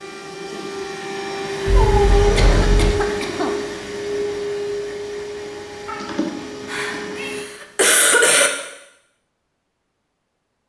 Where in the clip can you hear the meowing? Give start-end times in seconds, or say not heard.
1.6-2.9, 5.8-7.3.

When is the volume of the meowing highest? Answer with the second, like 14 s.
2 s.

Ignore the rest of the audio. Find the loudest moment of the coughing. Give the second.
8 s.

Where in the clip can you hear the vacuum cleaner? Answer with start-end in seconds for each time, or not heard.
0.0-7.5.